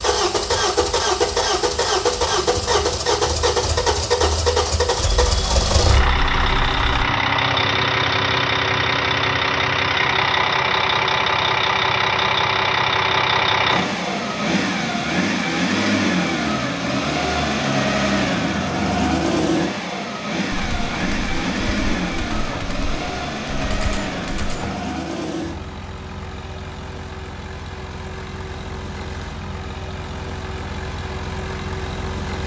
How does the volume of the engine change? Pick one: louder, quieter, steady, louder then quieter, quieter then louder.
quieter.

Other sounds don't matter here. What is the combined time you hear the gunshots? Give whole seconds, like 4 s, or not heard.
6 s.